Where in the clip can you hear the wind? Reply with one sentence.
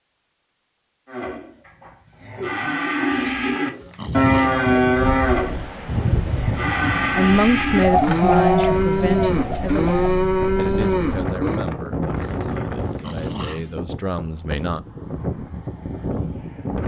The wind can be heard from 5.0 to 16.8 s.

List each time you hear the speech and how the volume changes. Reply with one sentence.
You can hear the speech from 7.1 to 14.8 s, getting quieter then louder.